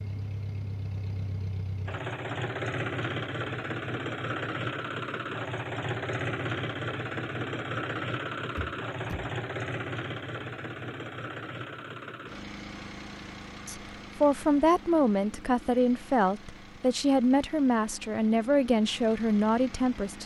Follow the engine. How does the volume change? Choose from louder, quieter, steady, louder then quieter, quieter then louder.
quieter.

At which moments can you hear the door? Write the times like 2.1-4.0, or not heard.
8.6-9.3.